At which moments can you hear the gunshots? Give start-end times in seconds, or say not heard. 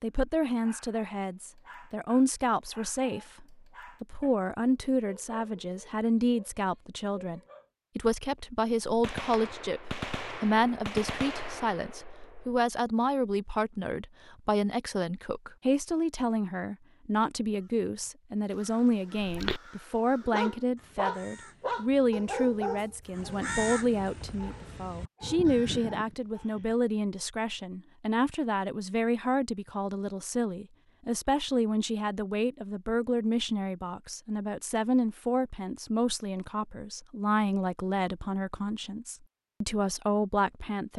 8.8-12.6.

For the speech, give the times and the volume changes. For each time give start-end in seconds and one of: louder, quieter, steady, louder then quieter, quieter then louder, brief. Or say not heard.
0.0-40.9 steady.